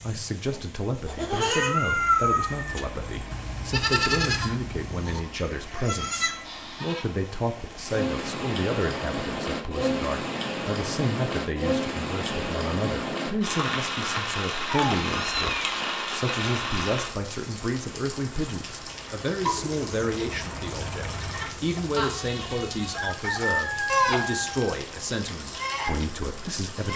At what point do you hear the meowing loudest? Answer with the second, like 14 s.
2 s.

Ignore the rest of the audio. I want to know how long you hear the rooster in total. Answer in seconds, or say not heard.
2 s.